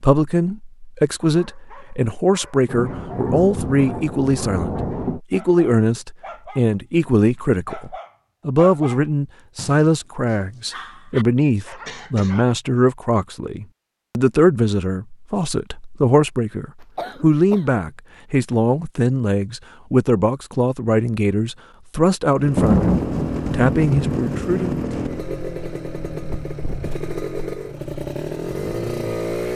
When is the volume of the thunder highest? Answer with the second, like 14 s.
23 s.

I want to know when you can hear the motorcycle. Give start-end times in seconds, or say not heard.
22.3-29.5.